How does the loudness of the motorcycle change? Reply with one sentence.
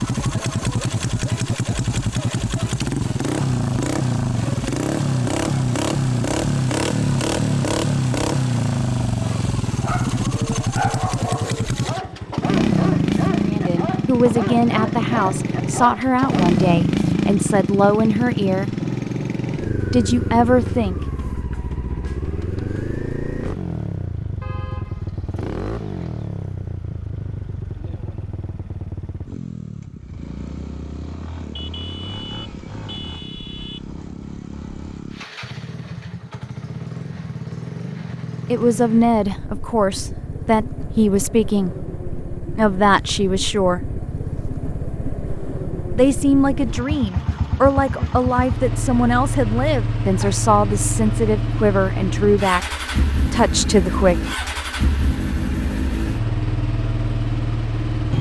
The loudness of the motorcycle goes down, then up.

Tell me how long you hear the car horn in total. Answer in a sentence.
You can hear the car horn for 4 seconds altogether.